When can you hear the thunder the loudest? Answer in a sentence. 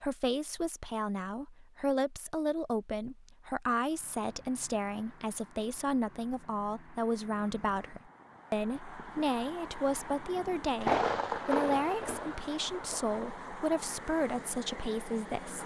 The loudest moment of the thunder is at 11 seconds.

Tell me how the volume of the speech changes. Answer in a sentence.
The volume of the speech stays about the same.